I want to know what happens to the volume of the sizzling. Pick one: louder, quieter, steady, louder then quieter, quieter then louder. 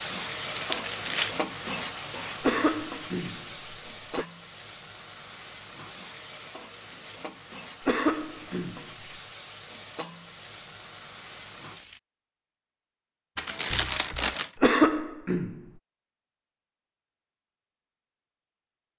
quieter.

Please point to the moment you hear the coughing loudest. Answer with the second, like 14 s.
15 s.